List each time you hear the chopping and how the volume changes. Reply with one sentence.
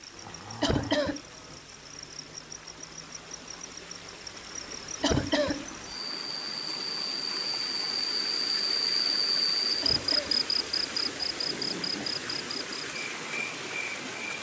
You can't hear the chopping here.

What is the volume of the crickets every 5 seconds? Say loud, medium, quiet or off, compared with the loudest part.
quiet, loud, loud.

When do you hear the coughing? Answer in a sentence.
The coughing can be heard from 0.6 to 1.2 s, from 5.0 to 5.7 s and from 9.8 to 11.2 s.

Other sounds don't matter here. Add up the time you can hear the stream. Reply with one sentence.
You can hear the stream for 14 seconds altogether.